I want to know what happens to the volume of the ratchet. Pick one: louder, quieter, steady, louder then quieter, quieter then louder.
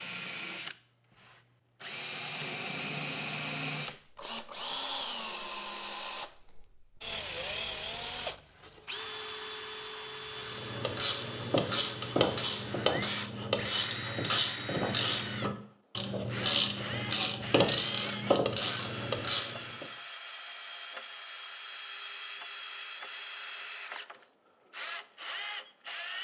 steady.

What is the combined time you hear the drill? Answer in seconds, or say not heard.
26 s.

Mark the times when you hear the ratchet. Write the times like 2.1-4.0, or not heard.
10.2-19.9.